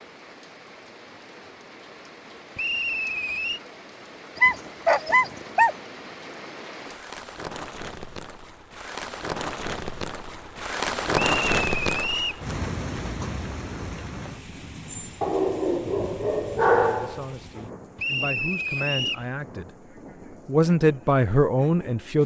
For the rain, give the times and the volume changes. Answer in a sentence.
The rain can be heard from 0.0 to 22.2 s, getting louder then quieter.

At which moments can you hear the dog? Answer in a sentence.
The dog can be heard from 4.3 to 5.8 s and from 15.2 to 17.6 s.